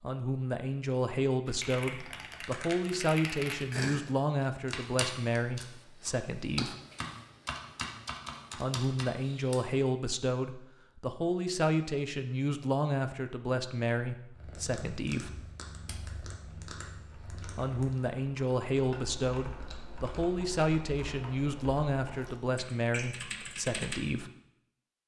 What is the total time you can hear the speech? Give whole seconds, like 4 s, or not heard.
20 s.